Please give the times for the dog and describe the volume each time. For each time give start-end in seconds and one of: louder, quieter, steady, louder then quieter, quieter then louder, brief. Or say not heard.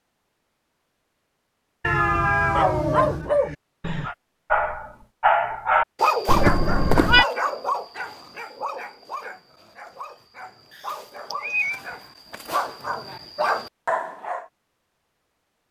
2.5-14.4 quieter then louder.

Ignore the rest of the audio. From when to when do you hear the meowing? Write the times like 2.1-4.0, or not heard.
1.8-3.3, 6.2-7.2, 10.7-11.8.